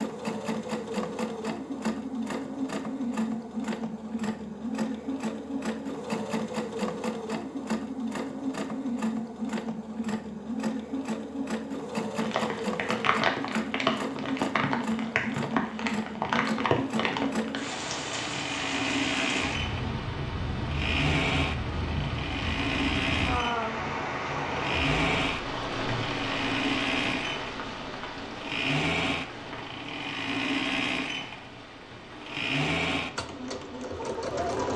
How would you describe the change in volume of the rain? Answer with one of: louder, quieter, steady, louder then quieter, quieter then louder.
quieter.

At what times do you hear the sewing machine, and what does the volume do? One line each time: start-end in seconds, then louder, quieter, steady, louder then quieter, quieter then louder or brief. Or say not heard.
0.0-34.7 steady.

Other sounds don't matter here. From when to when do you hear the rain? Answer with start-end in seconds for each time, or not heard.
12.2-34.5.